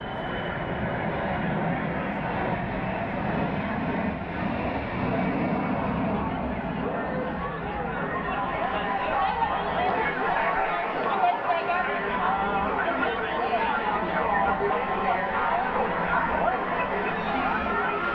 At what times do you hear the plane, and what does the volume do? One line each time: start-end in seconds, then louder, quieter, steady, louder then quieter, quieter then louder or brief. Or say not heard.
0.0-18.1 quieter.